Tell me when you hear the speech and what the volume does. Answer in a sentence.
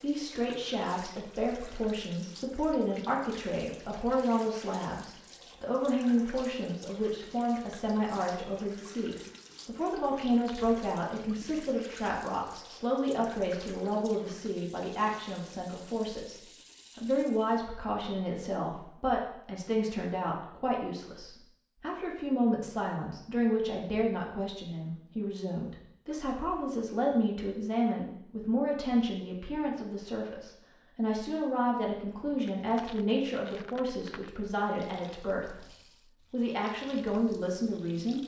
You can hear the speech from 0.0 to 35.6 s, at a steady volume; and briefly from 36.3 to 38.2 s.